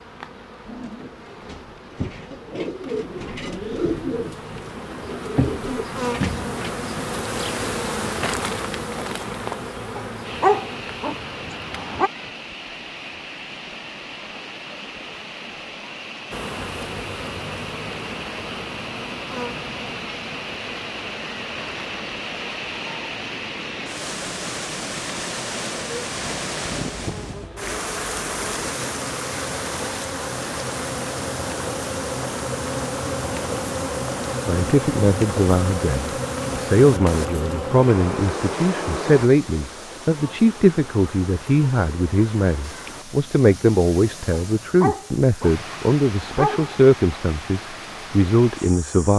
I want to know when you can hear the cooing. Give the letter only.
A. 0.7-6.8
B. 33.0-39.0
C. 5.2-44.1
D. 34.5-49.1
A.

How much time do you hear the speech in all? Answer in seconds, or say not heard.
15 s.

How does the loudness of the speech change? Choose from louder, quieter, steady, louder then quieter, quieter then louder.
steady.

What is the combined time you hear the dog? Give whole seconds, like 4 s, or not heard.
5 s.